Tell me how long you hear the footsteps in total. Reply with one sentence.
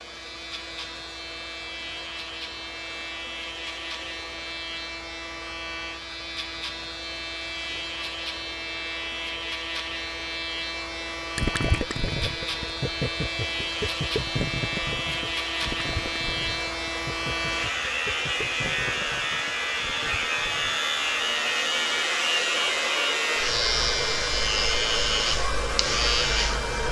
The footsteps can't be heard in this clip.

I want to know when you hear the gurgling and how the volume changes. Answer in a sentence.
The gurgling can be heard from 11.3 to 20.8 s, getting quieter.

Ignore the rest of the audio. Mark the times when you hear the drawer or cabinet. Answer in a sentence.
The drawer or cabinet can't be heard in this clip.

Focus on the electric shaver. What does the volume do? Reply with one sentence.
The loudness of the electric shaver goes up.